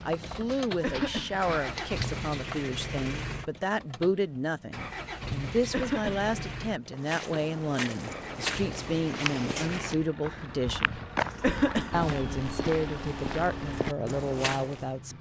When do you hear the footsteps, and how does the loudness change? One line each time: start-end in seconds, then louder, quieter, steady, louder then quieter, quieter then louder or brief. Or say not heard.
0.0-2.2 brief
6.8-14.9 steady.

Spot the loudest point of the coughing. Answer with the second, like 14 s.
12 s.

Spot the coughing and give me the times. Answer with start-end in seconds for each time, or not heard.
0.8-1.5, 5.7-6.3, 11.4-12.2.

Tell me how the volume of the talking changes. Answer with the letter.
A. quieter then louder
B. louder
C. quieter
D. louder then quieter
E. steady
E.